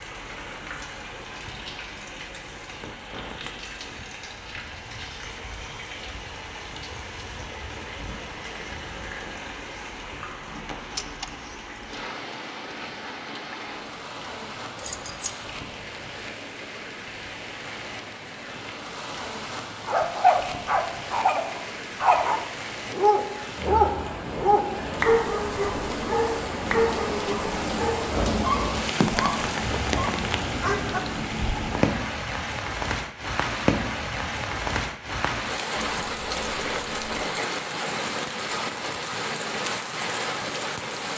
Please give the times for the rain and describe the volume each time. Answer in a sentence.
You can hear the rain from 0.0 to 41.1 s, getting louder.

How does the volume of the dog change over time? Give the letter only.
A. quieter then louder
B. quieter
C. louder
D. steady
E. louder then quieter
B.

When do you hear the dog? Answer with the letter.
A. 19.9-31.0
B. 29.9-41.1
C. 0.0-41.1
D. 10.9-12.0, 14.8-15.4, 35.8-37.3
A.